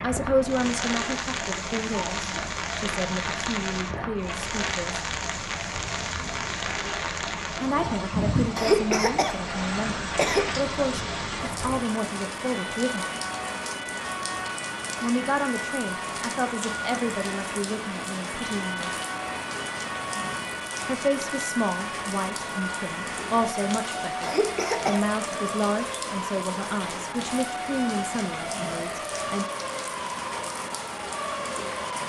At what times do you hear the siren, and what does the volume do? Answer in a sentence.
The siren can be heard from 0.0 to 32.0 s, at a steady volume.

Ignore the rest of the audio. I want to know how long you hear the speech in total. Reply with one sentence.
The speech can be heard for 23 seconds in total.